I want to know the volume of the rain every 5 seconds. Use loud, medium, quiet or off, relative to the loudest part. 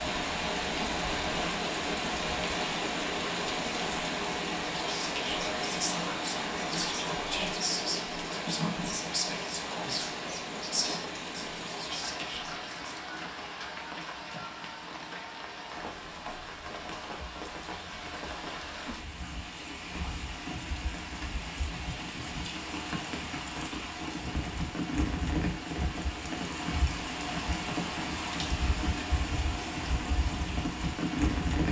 loud, loud, medium, medium, medium, loud, loud.